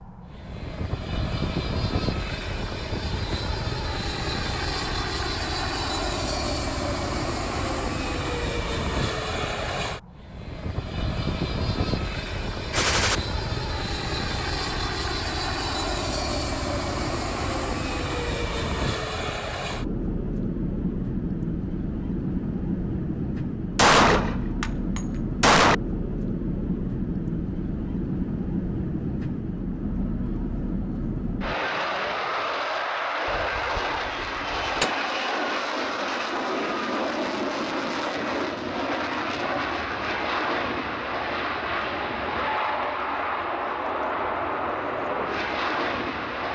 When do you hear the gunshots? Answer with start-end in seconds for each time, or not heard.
12.7-13.2, 23.8-25.8, 33.2-34.9.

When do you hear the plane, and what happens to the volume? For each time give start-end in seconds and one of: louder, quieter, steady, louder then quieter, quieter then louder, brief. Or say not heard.
0.0-46.4 steady.